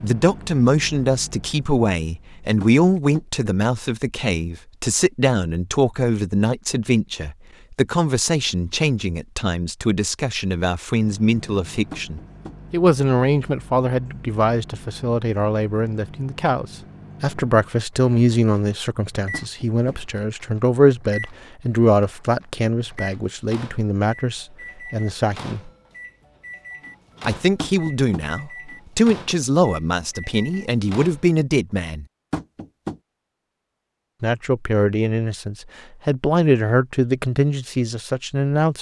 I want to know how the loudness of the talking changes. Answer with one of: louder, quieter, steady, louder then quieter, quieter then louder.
steady.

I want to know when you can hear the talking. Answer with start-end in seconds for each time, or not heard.
0.0-25.7, 27.2-32.0, 34.2-38.7.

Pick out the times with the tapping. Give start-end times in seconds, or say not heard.
2.6-3.2, 11.9-12.6, 19.3-20.0, 27.6-28.2, 32.3-33.0.